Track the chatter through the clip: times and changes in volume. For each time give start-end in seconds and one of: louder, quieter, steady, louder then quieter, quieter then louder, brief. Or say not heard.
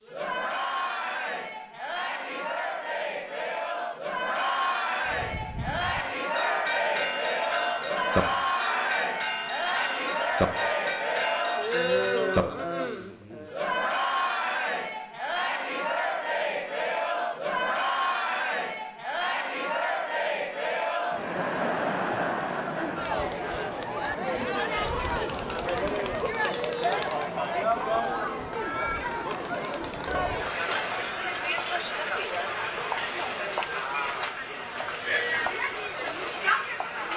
0.0-37.1 steady.